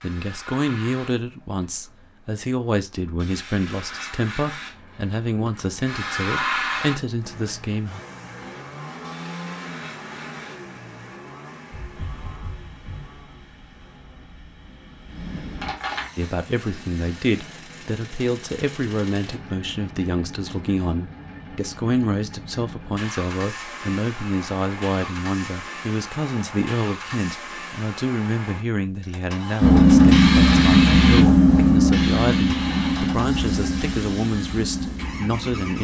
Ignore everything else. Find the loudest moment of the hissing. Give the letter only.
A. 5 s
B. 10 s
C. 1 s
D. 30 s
D.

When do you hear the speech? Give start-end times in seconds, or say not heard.
0.0-8.0, 16.1-35.7.